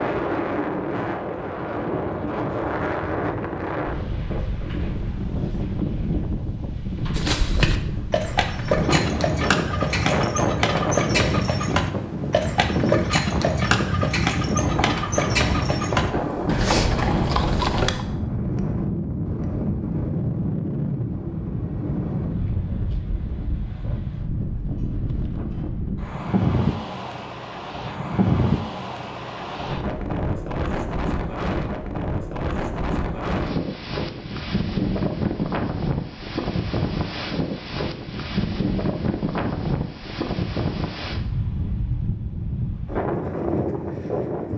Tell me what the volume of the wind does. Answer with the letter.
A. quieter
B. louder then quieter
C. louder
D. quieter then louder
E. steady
E.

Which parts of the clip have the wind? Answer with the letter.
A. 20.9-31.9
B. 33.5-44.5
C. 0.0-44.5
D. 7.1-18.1
C.